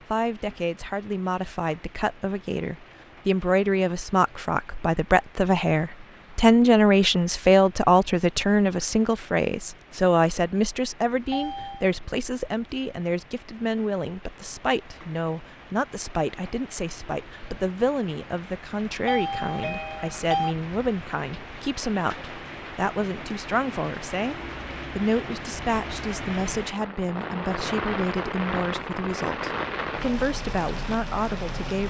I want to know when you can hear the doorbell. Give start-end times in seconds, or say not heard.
11.3-11.9, 19.1-20.6.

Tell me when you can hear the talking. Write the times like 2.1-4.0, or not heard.
0.1-24.4, 24.9-31.8.